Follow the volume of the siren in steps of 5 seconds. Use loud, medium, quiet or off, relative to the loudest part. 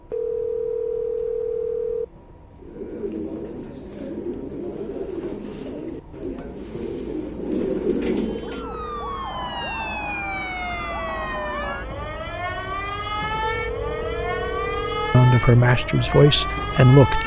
off, loud, loud, loud.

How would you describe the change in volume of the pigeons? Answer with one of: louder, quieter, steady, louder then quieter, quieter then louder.
louder.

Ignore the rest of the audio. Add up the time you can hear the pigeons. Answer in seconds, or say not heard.
6 s.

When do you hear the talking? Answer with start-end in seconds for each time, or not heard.
15.1-17.2.